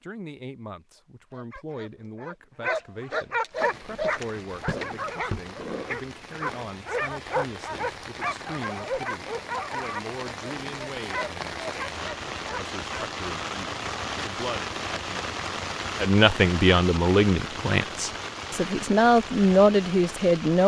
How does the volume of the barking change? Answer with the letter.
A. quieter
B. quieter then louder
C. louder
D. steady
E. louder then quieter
A.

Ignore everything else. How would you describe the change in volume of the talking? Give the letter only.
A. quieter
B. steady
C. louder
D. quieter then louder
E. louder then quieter
C.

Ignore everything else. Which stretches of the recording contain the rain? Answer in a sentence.
You can hear the rain from 3.5 to 20.6 s.